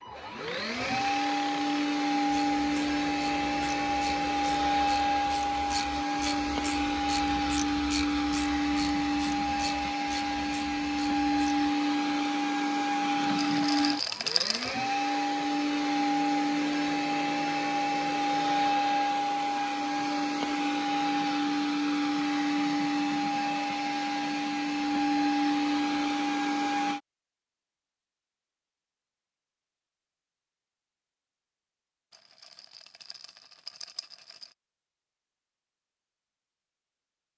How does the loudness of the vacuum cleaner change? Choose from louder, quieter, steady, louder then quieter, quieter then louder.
steady.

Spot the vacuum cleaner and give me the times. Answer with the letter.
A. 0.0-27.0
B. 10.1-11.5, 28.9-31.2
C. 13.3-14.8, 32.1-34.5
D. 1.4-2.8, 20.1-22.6
A.